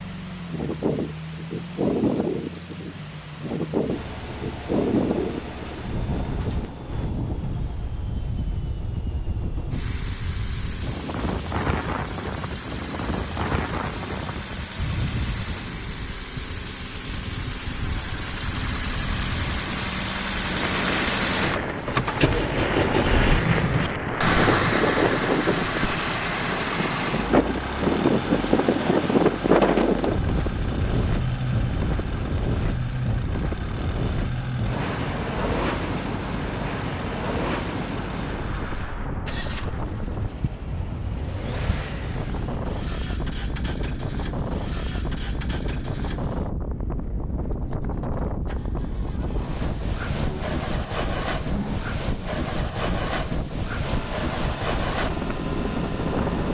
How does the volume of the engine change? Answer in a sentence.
The loudness of the engine goes up, then down.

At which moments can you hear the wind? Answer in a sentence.
The wind can be heard from 0.0 to 56.4 s.